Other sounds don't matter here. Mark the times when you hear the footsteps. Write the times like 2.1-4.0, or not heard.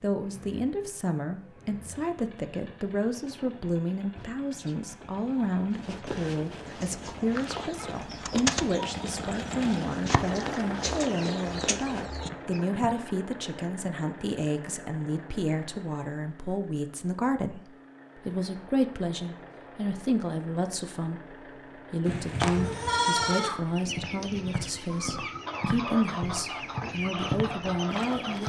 5.7-12.9, 23.9-28.4.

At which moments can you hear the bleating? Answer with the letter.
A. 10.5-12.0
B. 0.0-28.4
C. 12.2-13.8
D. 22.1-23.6
D.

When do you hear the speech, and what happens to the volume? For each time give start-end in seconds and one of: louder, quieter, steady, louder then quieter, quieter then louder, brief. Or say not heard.
0.0-28.4 steady.